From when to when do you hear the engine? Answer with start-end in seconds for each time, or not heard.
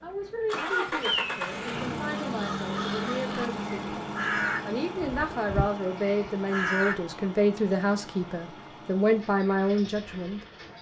0.0-10.7.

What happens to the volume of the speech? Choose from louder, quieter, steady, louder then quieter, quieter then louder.
louder.